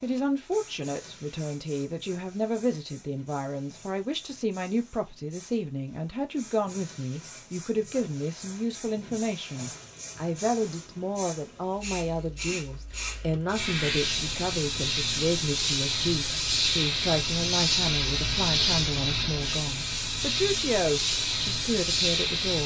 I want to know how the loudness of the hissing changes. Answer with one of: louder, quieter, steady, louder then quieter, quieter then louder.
louder.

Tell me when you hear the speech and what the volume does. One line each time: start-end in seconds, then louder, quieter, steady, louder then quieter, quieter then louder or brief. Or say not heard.
0.0-22.6 steady.